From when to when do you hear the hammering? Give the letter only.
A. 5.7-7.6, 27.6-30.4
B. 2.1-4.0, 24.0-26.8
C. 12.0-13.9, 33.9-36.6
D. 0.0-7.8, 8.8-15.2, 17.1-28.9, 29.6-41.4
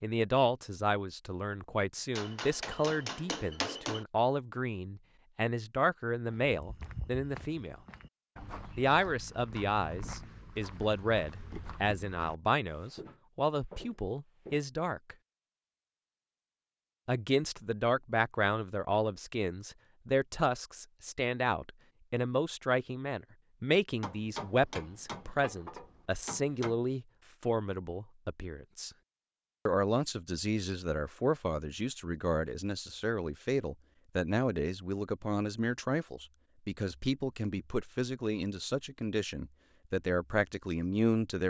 B.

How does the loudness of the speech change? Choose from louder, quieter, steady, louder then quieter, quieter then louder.
steady.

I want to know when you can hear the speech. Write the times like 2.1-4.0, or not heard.
0.0-7.8, 8.8-15.2, 17.1-28.9, 29.6-41.4.